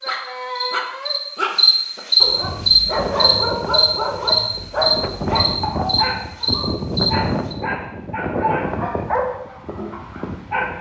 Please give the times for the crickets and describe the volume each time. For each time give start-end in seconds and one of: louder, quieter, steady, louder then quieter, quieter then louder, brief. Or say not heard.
0.0-7.5 louder then quieter.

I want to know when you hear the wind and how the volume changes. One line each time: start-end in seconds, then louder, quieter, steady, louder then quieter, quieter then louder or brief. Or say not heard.
2.3-10.7 louder then quieter.